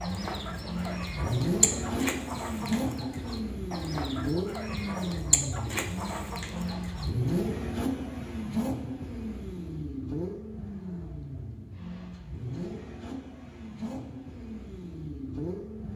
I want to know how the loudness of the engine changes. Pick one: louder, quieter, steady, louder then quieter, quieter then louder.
quieter.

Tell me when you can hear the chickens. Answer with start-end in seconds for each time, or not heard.
0.0-7.1.